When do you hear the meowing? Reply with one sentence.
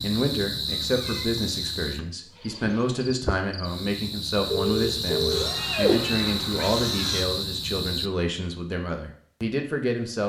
You can hear the meowing from 0.8 to 1.4 s and from 5.3 to 7.2 s.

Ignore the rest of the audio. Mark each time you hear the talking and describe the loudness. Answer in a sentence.
You can hear the talking from 0.0 to 10.2 s, at a steady volume.